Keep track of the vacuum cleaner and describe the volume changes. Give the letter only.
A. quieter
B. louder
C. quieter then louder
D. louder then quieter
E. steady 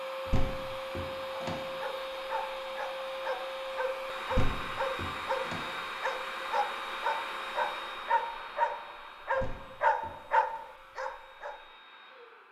A.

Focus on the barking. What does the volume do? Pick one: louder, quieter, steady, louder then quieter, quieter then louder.
louder.